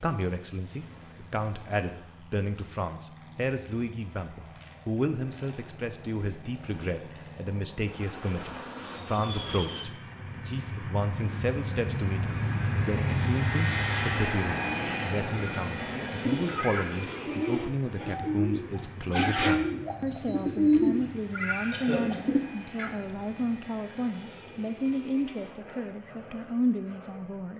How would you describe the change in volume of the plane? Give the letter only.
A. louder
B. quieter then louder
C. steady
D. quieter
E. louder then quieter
E.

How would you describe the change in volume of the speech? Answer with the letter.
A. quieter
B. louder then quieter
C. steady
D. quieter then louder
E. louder
C.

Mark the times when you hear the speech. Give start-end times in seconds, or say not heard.
0.0-27.5.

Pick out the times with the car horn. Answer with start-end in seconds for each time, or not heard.
not heard.